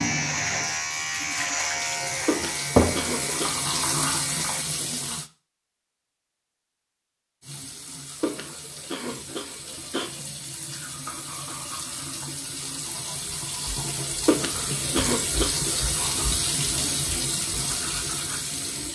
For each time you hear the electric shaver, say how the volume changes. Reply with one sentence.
The electric shaver can be heard from 0.0 to 4.7 s, getting quieter.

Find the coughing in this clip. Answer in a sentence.
The coughing can be heard from 2.2 to 3.6 s, from 8.2 to 10.1 s and from 14.2 to 15.8 s.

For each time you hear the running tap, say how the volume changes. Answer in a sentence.
You can hear the running tap from 0.0 to 5.3 s, getting louder; and from 7.4 to 18.9 s, getting louder.